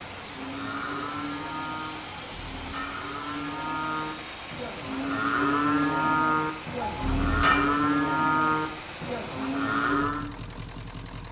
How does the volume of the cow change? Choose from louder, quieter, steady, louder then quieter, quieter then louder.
louder.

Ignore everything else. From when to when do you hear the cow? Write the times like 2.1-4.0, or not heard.
0.2-10.3.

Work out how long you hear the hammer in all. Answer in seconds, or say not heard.
2 s.